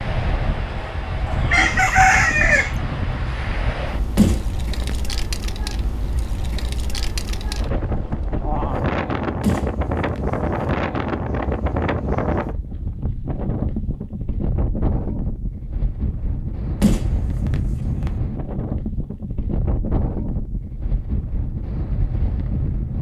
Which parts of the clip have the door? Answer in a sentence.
You can hear the door from 4.2 to 5.0 s, from 9.4 to 10.7 s and from 16.8 to 18.1 s.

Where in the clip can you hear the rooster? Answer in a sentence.
You can hear the rooster from 1.2 to 2.8 s.